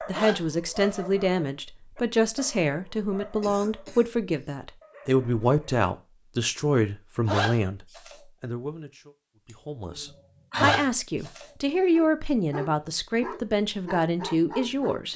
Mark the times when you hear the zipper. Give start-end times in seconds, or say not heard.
0.1-1.1, 7.2-8.2, 10.6-11.4.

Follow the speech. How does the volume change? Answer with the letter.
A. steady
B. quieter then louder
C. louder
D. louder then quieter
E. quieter
A.